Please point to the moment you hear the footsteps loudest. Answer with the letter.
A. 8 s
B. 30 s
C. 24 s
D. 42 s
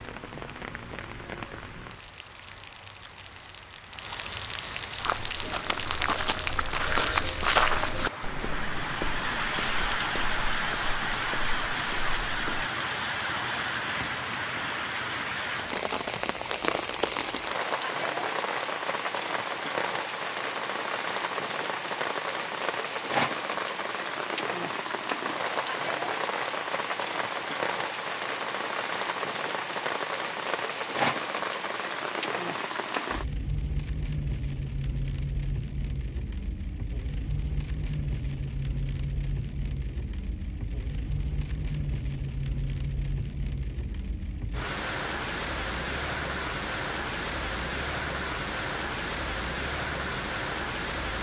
A.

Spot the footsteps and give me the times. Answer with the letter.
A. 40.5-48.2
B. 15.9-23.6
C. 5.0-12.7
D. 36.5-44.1
C.